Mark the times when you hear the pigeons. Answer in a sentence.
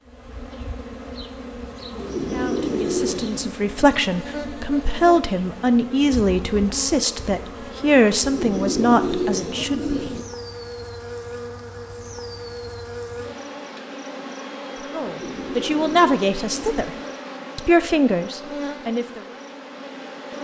The pigeons can be heard from 1.9 to 3.5 s, from 8.2 to 10.2 s and from 15.1 to 17.1 s.